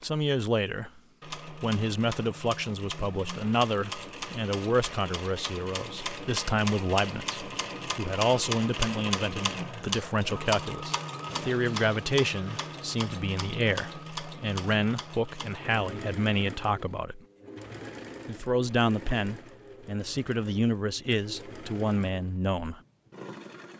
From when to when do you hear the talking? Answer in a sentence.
You can hear the talking from 0.0 to 17.2 s and from 18.2 to 22.8 s.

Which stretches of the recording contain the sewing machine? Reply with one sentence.
You can hear the sewing machine from 0.0 to 23.7 s.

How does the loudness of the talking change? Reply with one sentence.
The loudness of the talking stays about the same.